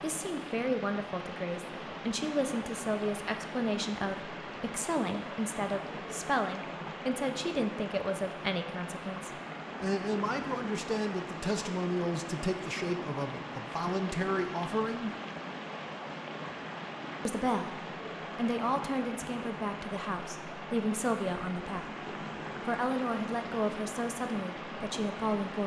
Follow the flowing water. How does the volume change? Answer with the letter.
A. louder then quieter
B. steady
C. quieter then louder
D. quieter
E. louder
B.